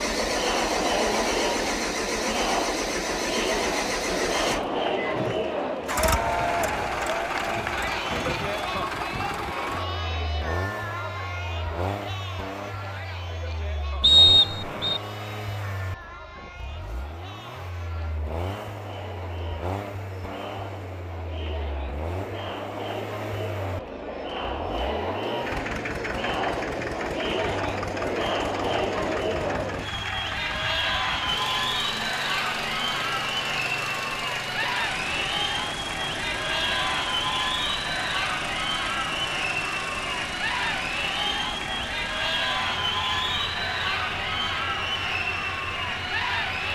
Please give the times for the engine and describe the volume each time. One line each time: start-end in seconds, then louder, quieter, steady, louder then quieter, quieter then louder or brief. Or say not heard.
0.0-46.6 quieter.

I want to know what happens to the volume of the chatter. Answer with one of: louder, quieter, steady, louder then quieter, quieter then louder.
quieter then louder.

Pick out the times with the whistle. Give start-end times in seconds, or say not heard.
14.0-15.0.